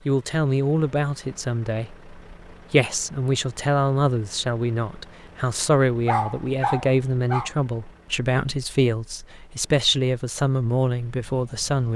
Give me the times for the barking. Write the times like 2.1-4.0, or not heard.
6.0-7.5.